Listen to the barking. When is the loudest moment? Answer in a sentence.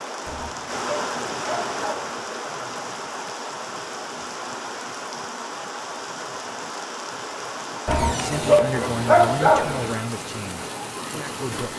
The loudest moment of the barking is at 9 seconds.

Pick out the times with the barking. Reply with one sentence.
You can hear the barking from 0.2 to 2.1 s and from 7.8 to 9.9 s.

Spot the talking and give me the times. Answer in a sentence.
The talking can be heard from 8.2 to 11.7 s.